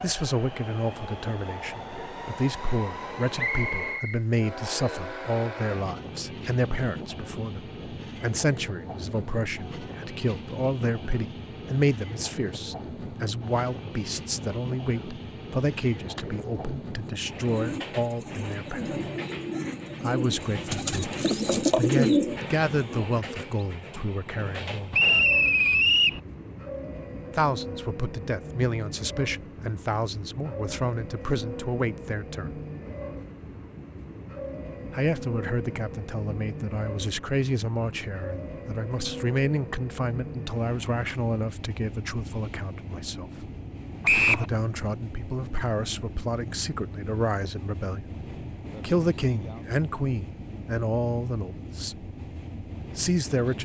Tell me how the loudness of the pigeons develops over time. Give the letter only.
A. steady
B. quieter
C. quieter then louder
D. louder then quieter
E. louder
E.